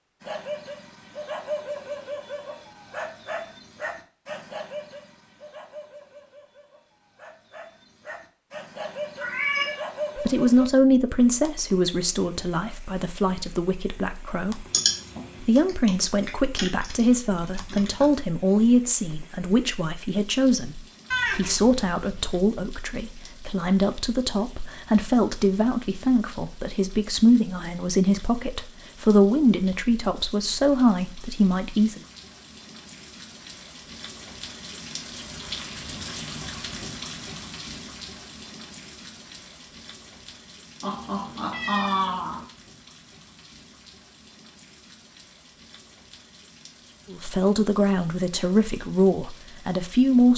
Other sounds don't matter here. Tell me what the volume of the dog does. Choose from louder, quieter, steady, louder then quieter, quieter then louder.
quieter then louder.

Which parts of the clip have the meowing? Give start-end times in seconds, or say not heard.
9.2-9.8, 21.1-22.4, 40.8-42.5.